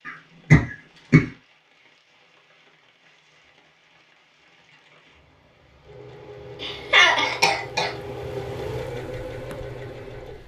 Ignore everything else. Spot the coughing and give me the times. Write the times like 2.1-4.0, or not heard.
0.1-1.2, 6.6-7.9.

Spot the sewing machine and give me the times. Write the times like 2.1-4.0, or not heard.
5.7-10.4.